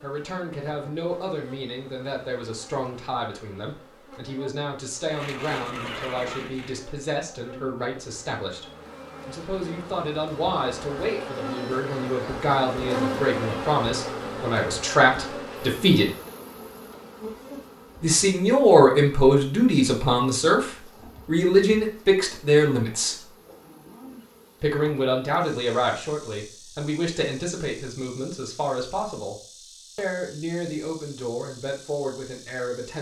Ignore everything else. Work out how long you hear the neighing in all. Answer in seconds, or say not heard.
2 s.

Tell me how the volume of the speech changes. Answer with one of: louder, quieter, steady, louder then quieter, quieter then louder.
louder then quieter.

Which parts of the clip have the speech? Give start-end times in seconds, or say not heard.
0.0-16.1, 18.0-23.2, 24.6-32.9.